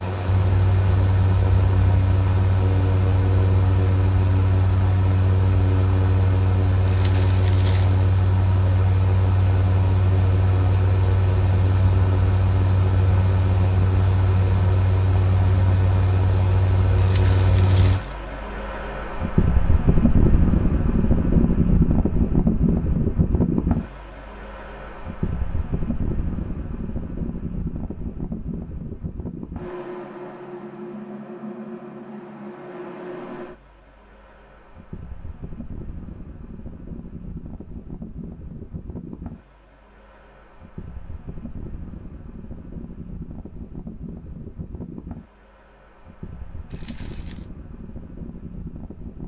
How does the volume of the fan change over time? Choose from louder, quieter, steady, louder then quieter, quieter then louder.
quieter.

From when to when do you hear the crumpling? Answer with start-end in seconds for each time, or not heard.
6.8-8.1, 16.9-18.1, 46.7-47.5.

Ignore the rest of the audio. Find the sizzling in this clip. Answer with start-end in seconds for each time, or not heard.
not heard.